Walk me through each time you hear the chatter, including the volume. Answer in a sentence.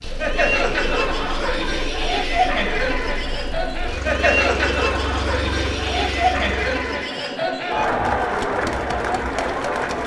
The chatter can be heard from 0.0 to 10.0 s, at a steady volume.